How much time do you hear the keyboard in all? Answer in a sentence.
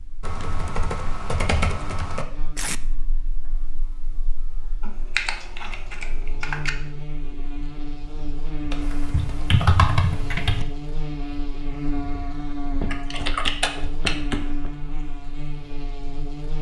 The keyboard can be heard for 8 seconds in total.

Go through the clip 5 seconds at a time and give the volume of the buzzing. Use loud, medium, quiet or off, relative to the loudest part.
quiet, loud, loud, loud.